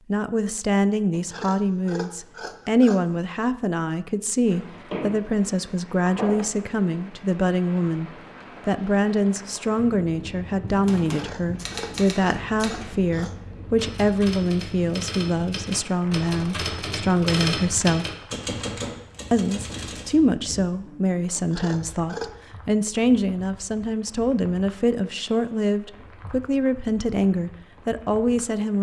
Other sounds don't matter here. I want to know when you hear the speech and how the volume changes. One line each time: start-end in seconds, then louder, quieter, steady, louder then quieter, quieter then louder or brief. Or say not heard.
0.1-18.1 steady
19.3-28.7 steady.